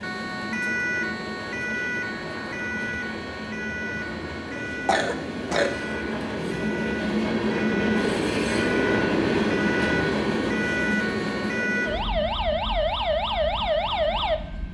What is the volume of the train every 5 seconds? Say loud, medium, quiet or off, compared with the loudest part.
medium, loud, medium.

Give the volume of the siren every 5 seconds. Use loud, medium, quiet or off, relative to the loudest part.
medium, medium, loud.